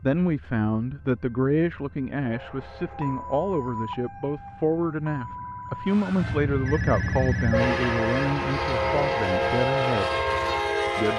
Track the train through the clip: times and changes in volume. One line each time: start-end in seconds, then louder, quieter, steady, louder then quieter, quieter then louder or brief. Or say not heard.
0.2-11.1 louder.